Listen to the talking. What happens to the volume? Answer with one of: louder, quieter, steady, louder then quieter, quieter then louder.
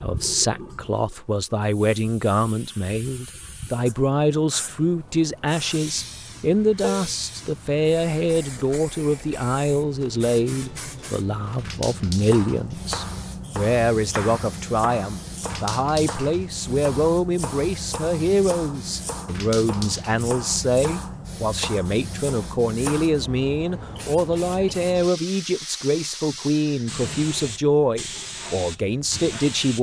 steady.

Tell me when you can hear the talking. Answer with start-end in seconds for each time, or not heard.
0.0-29.7.